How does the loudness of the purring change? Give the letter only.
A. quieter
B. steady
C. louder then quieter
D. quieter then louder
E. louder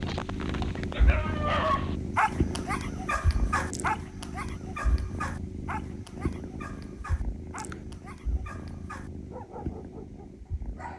A.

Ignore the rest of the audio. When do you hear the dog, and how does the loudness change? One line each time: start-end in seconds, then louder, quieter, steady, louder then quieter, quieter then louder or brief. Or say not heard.
0.0-10.9 quieter.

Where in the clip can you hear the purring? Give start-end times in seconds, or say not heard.
0.0-10.9.